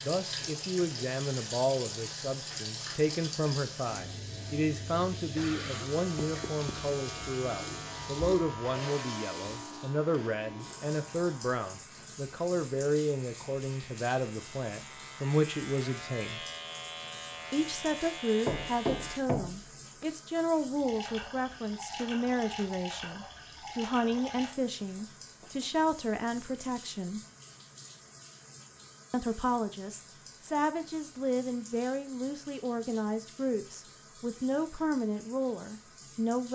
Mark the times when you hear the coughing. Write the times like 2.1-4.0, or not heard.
5.2-6.0.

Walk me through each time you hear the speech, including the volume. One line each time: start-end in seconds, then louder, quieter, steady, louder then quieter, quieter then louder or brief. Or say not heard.
0.0-16.4 steady
17.5-27.2 steady
29.1-36.5 steady.